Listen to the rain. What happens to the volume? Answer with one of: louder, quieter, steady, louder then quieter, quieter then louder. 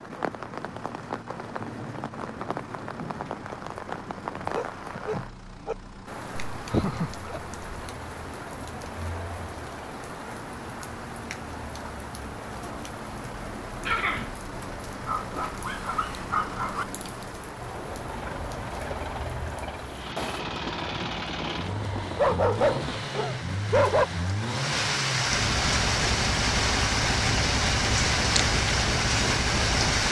louder.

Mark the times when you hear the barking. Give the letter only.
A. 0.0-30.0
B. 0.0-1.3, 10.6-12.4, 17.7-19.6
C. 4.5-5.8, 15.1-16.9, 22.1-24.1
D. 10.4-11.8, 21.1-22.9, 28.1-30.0
C.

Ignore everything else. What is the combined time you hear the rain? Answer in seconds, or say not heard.
30 s.